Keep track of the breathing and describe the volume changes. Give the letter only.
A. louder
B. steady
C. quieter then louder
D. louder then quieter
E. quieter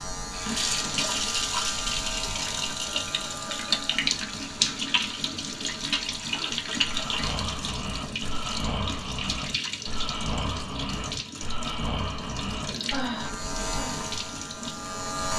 B.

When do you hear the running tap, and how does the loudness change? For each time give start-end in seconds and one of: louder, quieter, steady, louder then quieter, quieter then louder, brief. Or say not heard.
0.1-15.3 quieter.